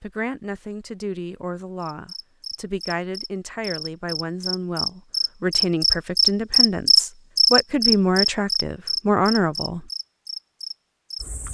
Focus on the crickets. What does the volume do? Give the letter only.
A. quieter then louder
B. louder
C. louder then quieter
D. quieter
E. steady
C.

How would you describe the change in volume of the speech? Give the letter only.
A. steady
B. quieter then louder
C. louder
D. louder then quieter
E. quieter
C.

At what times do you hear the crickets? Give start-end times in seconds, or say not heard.
1.8-11.5.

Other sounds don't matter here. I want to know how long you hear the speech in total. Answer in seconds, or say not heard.
10 s.